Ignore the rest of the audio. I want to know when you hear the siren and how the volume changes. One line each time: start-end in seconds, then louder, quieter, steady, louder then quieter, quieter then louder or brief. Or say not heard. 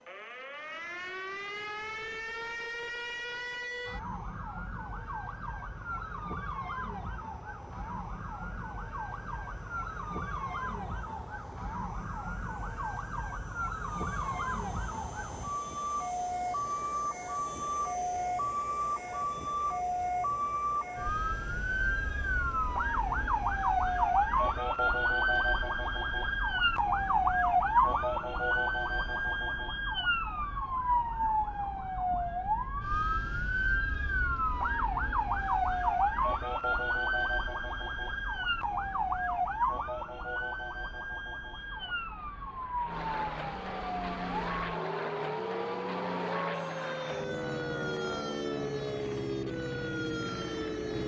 0.0-51.0 louder then quieter.